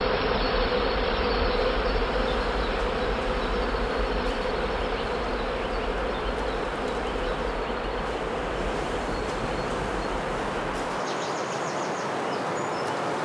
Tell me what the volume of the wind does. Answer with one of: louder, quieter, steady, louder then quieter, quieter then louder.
louder.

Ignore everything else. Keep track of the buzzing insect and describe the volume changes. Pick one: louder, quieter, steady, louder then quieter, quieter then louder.
quieter.